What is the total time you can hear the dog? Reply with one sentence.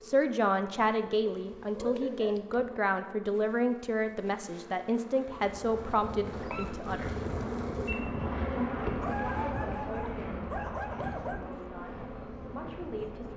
The dog can be heard for 4 seconds in total.